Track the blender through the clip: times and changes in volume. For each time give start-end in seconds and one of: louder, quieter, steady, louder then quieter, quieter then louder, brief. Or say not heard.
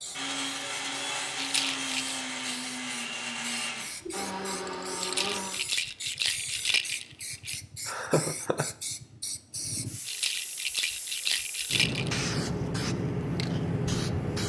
0.0-5.7 steady.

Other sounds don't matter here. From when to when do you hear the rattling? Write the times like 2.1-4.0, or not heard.
1.4-2.1, 5.0-7.6, 10.1-12.3.